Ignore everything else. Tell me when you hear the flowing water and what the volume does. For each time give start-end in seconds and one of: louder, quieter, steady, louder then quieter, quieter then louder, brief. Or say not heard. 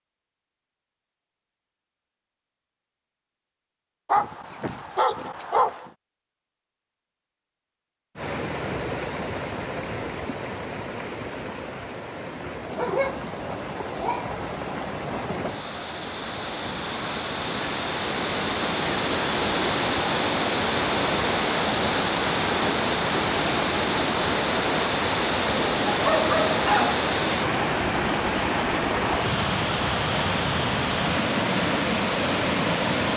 8.2-33.1 louder.